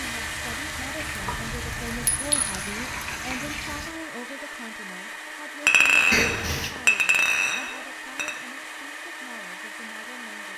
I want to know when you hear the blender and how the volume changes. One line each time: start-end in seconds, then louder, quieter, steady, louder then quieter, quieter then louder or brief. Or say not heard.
0.0-10.5 steady.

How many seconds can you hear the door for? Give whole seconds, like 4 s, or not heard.
2 s.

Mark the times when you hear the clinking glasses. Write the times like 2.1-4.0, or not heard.
2.0-2.5, 5.7-8.3.